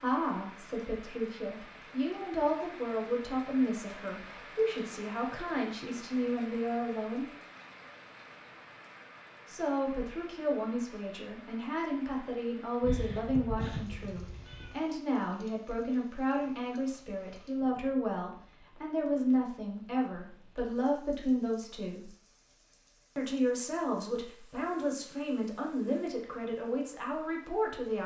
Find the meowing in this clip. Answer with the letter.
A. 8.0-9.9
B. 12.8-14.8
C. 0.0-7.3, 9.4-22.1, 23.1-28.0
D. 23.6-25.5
B.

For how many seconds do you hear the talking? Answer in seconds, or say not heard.
25 s.